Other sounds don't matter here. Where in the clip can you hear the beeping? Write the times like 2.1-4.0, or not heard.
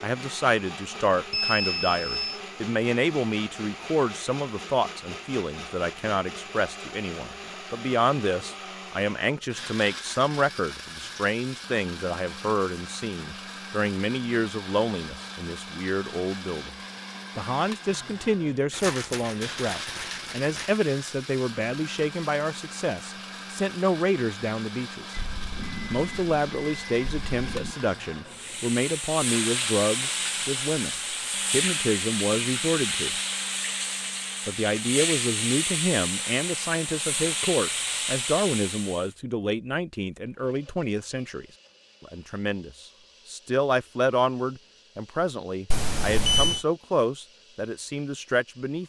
1.3-2.4, 25.1-27.8, 45.7-46.6.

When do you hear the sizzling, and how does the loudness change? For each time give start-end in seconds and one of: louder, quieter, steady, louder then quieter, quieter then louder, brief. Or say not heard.
28.2-39.1 steady.